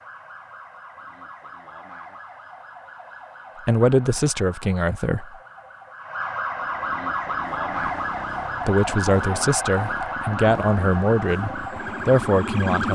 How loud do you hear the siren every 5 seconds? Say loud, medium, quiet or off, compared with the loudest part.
quiet, loud, loud.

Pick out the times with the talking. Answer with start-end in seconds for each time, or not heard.
3.6-5.3, 8.7-12.9.